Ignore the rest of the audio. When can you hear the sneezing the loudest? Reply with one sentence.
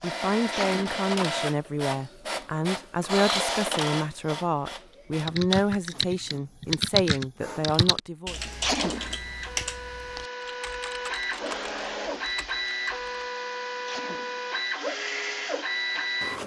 The loudest moment of the sneezing is at 9 seconds.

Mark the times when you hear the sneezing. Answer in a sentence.
You can hear the sneezing from 0.5 to 1.0 s, from 8.6 to 9.2 s and from 13.8 to 14.4 s.